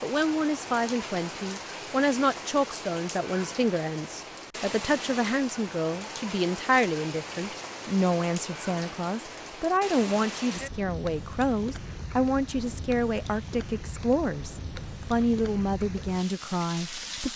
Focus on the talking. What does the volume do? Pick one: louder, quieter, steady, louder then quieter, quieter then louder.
steady.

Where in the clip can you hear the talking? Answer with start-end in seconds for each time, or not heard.
0.0-17.3.